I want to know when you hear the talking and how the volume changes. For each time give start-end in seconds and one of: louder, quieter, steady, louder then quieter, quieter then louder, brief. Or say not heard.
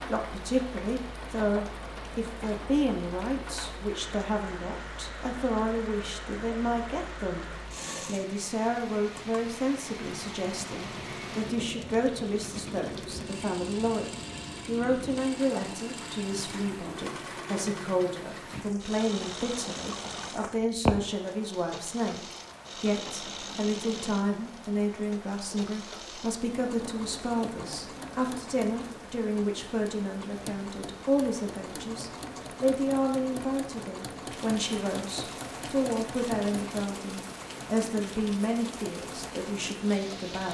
0.1-40.5 steady.